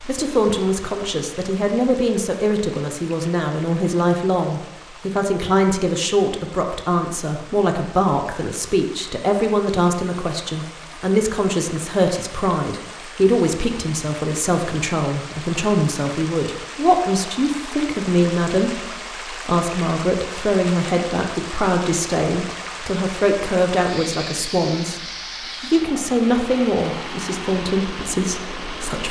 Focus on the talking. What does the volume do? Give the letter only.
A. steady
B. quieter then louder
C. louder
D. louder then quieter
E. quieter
A.